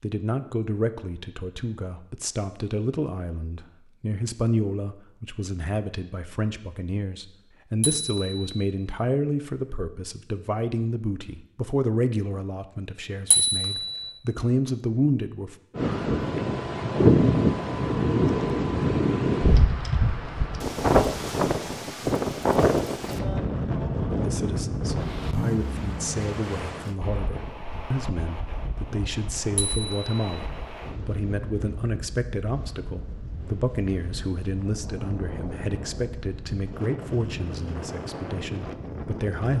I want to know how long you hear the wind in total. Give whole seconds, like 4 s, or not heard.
24 s.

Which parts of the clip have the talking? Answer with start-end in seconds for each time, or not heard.
0.0-15.6, 24.1-39.5.